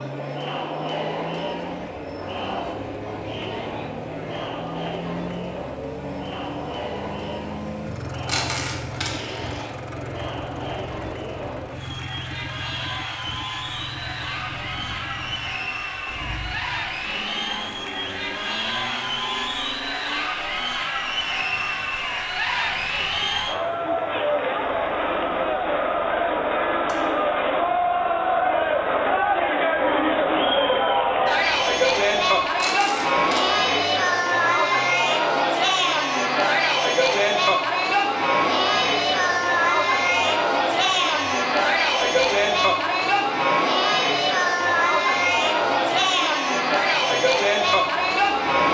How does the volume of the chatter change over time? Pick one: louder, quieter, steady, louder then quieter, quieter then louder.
louder.